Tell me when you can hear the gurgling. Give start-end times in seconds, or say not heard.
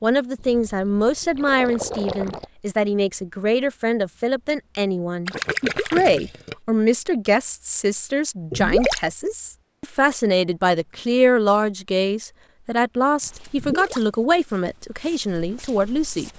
0.3-2.5, 5.2-6.5, 8.5-9.1, 13.6-14.2.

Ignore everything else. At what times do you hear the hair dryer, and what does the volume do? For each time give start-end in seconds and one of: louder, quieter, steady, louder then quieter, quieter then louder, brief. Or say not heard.
not heard.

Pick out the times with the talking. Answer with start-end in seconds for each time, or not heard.
0.0-16.3.